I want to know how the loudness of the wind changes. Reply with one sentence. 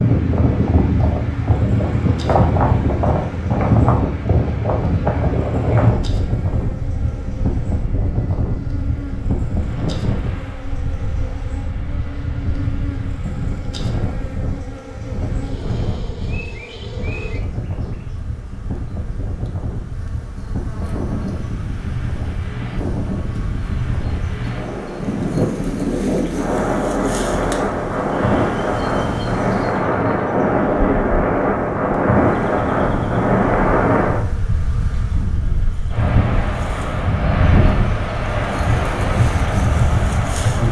The volume of the wind goes down, then up.